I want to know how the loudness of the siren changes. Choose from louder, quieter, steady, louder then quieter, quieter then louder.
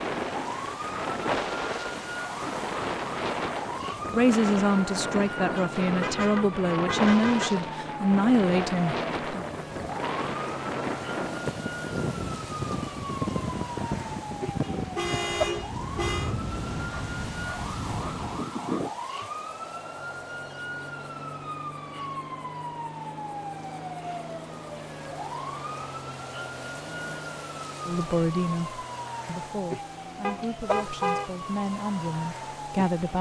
steady.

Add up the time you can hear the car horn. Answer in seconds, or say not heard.
5 s.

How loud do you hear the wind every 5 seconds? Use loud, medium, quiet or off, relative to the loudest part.
loud, loud, loud, loud, off, off, off.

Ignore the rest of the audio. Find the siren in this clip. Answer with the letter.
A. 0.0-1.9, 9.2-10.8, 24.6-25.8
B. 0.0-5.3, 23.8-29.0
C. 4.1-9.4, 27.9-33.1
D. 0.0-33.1
D.